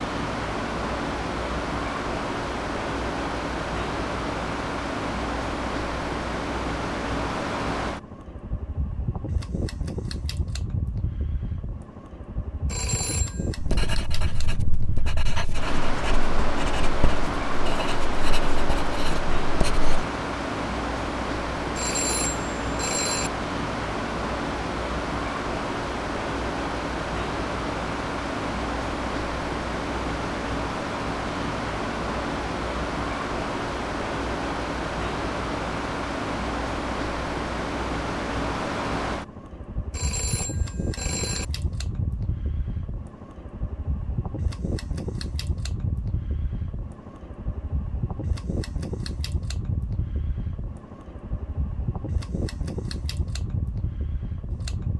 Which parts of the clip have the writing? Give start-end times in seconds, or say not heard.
13.6-20.1.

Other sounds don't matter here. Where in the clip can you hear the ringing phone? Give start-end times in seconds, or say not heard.
12.7-13.5, 21.8-23.3, 39.9-41.5.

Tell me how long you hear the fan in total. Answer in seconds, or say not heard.
55 s.